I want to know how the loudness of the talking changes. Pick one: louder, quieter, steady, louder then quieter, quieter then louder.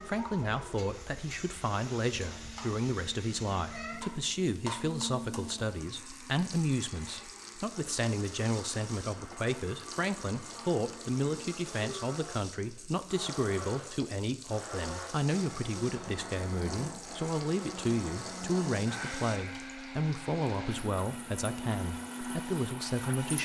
steady.